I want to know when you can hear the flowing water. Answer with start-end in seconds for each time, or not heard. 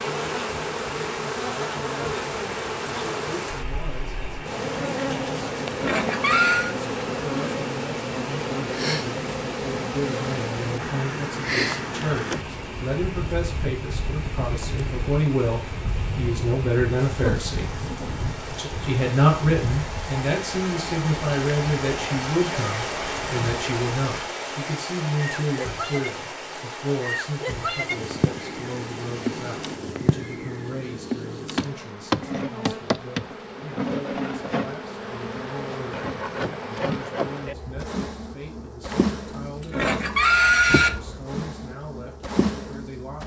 0.0-29.8.